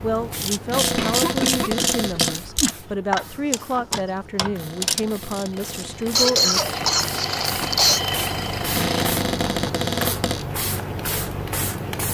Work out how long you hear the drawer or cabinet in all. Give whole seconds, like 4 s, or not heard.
5 s.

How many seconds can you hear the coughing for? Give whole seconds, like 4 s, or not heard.
4 s.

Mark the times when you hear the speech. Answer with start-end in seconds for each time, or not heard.
0.0-6.6.